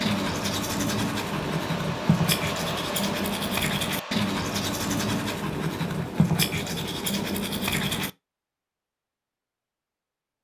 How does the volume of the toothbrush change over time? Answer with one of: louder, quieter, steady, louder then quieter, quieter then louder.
steady.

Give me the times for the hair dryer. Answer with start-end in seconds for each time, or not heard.
0.0-5.4.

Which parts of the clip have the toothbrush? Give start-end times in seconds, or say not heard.
0.0-8.1.